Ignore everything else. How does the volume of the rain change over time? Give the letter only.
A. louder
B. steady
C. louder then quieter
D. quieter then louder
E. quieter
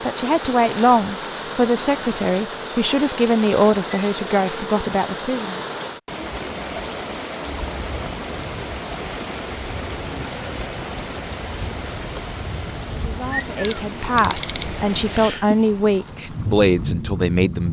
B.